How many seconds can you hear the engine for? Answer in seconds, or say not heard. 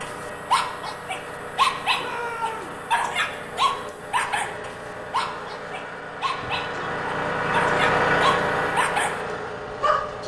10 s.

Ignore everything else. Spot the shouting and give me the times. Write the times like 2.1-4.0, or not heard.
1.9-2.8, 6.3-7.0.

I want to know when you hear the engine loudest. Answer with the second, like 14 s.
8 s.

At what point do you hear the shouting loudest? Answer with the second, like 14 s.
2 s.